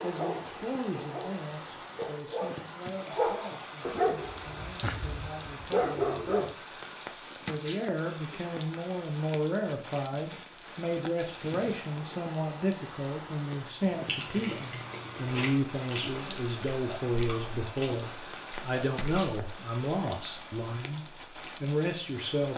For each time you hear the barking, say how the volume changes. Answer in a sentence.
You can hear the barking from 0.0 to 6.5 s, getting louder.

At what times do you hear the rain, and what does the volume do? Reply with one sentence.
The rain can be heard from 0.0 to 22.5 s, at a steady volume.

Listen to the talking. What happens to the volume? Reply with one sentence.
The loudness of the talking goes up.